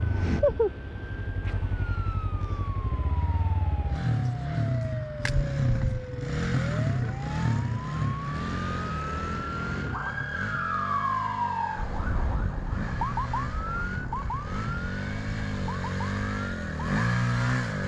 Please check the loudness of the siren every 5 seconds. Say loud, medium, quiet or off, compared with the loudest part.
medium, medium, loud, medium.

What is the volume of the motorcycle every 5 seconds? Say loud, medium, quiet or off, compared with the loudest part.
loud, loud, medium, loud.